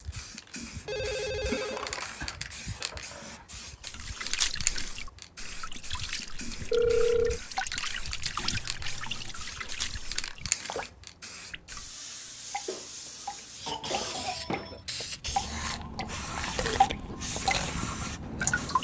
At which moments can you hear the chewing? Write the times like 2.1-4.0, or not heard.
15.2-18.7.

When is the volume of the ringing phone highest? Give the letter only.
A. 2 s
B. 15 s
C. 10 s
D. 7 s
D.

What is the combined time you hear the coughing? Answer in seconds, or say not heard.
5 s.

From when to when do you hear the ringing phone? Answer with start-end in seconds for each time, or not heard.
0.8-2.4, 6.7-7.4, 14.2-14.8.